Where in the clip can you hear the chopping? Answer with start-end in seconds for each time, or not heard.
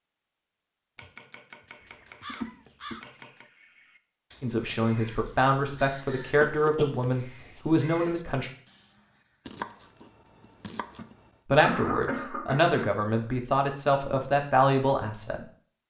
0.9-3.5, 9.4-11.3.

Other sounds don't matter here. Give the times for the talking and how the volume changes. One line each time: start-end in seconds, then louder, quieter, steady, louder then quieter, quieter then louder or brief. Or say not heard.
4.4-8.5 steady
11.4-15.4 louder.